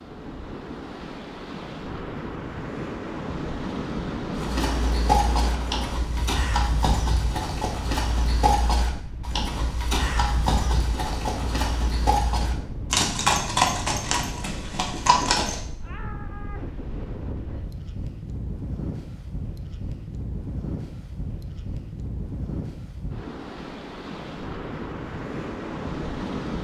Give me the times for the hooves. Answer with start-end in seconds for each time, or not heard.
4.3-15.6.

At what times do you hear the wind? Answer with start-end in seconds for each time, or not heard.
0.0-26.6.